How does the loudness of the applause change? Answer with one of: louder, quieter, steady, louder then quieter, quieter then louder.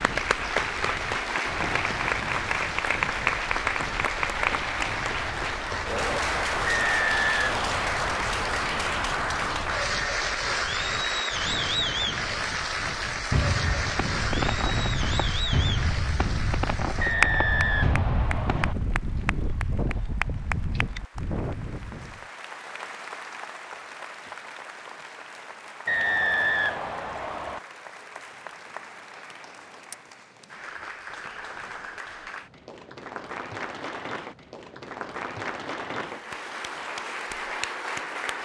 quieter then louder.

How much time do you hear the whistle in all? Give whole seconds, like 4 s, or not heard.
5 s.